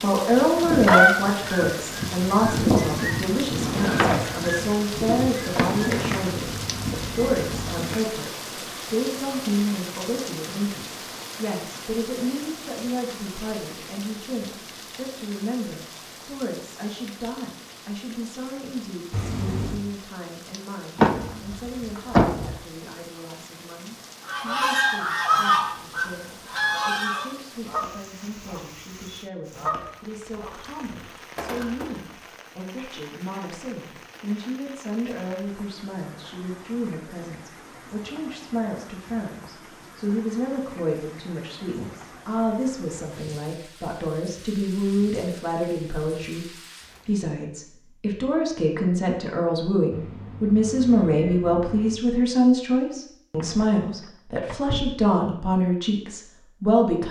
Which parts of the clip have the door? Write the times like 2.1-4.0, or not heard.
3.5-4.6, 5.4-6.2, 20.9-22.6, 53.4-55.0.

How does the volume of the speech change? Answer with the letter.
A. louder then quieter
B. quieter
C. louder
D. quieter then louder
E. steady
D.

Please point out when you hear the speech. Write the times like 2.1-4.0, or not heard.
0.0-6.5, 7.2-57.0.